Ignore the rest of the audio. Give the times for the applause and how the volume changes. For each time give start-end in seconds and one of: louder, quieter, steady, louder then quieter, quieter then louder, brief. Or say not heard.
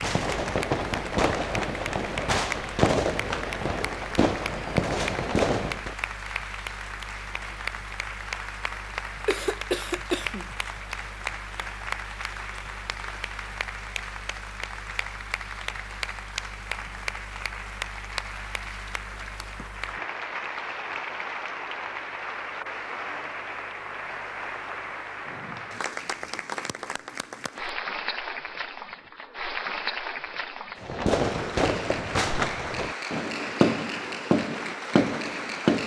0.0-35.8 steady.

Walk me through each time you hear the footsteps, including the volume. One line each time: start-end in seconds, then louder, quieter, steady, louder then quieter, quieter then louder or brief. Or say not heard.
not heard.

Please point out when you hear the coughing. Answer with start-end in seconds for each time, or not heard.
9.2-10.5.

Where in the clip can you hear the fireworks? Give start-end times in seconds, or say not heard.
0.0-6.0, 30.8-35.8.